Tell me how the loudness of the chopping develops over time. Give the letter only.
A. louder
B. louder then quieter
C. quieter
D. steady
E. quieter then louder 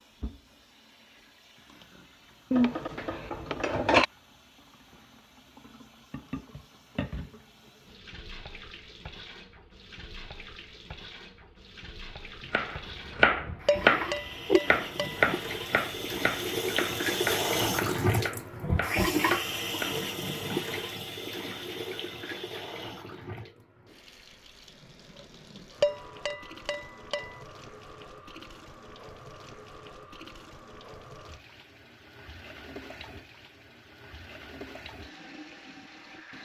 C.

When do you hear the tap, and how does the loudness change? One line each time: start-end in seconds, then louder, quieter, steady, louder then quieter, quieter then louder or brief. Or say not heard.
0.0-36.3 louder then quieter.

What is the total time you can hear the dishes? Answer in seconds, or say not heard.
5 s.